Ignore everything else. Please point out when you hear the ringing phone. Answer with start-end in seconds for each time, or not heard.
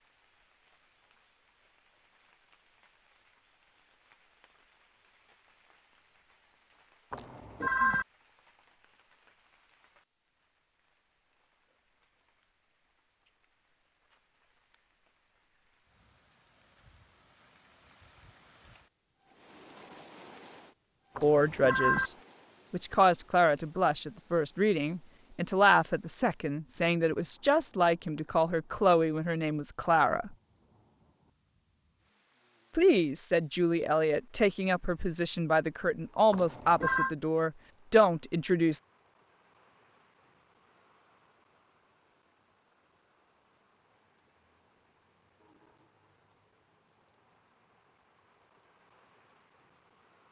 7.1-8.1, 21.1-22.1, 36.3-37.1.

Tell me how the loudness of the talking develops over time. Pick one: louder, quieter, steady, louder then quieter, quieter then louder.
steady.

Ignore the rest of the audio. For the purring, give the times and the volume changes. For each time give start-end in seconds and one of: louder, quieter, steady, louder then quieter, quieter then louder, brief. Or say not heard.
not heard.